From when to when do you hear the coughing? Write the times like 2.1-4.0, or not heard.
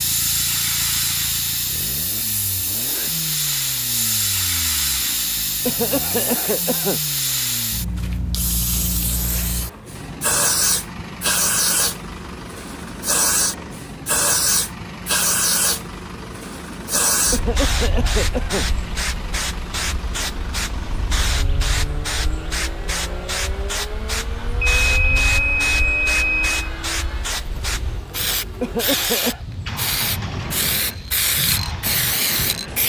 5.7-7.0, 17.3-18.6, 28.6-29.4.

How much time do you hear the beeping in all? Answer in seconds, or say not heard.
2 s.